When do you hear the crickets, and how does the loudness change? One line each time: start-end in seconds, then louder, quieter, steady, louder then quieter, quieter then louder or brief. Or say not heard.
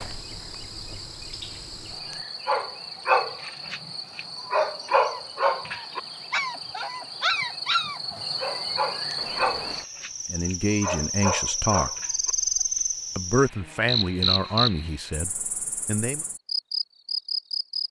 0.0-17.8 louder.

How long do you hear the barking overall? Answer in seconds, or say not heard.
10 s.